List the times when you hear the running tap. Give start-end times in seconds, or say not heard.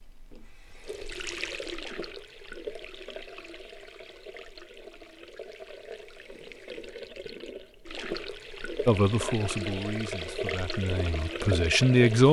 0.0-12.2.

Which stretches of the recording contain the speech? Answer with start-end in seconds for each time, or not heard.
8.8-12.2.